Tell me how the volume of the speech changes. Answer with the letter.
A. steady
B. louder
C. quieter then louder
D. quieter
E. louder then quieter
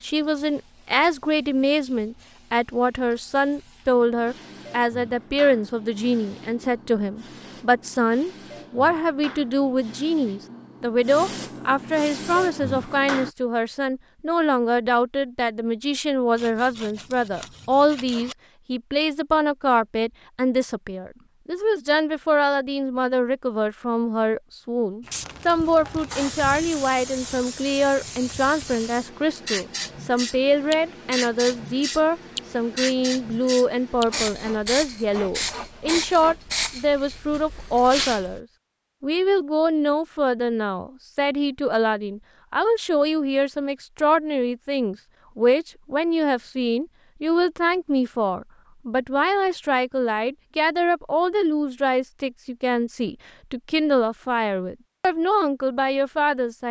A.